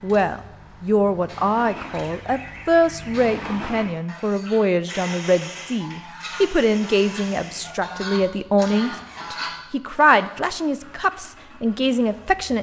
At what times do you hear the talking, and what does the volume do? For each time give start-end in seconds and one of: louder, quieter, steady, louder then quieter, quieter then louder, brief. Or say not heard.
0.0-12.5 steady.